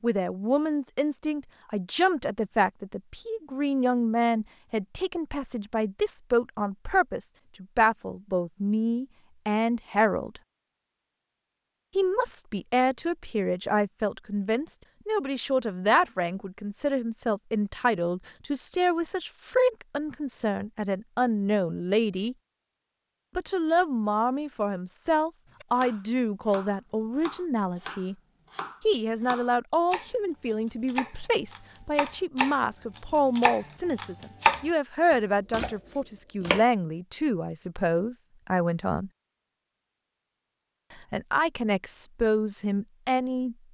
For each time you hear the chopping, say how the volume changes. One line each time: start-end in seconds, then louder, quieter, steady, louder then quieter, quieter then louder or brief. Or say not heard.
25.6-34.6 louder
35.5-36.6 brief.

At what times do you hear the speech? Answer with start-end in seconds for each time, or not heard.
0.0-10.4, 11.9-22.4, 23.4-28.1, 28.9-39.1, 40.9-43.5.